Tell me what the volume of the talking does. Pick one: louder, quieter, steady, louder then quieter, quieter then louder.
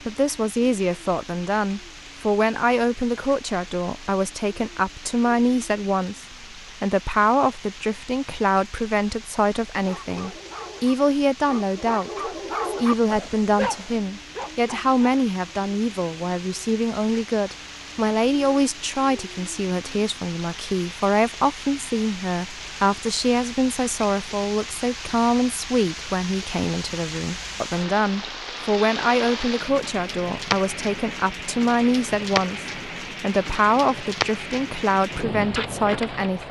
steady.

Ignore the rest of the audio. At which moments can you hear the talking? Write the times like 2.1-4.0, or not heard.
0.1-36.4.